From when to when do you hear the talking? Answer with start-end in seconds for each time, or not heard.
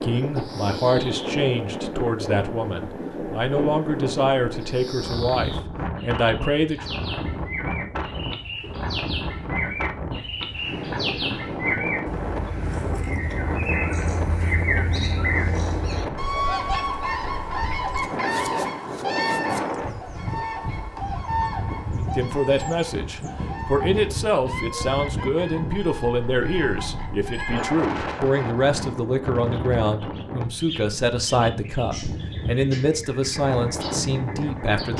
0.0-7.0, 22.0-34.9.